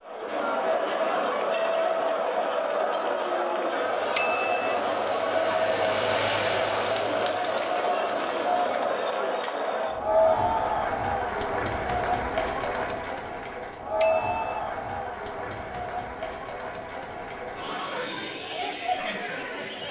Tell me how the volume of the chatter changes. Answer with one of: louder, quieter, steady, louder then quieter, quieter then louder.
quieter.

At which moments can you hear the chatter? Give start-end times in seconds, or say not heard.
0.0-19.8.